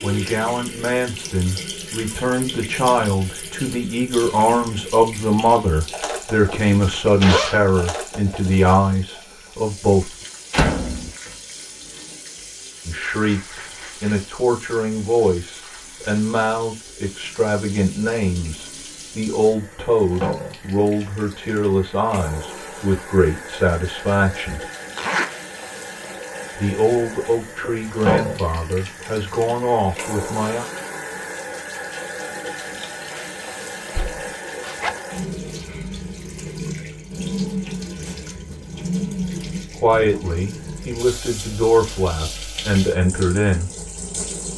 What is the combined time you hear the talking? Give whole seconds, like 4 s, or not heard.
30 s.